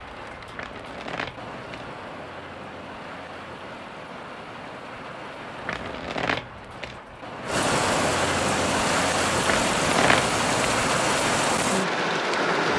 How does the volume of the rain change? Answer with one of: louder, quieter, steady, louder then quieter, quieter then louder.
louder.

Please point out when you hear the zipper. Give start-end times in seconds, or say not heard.
not heard.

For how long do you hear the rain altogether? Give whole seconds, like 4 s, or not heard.
13 s.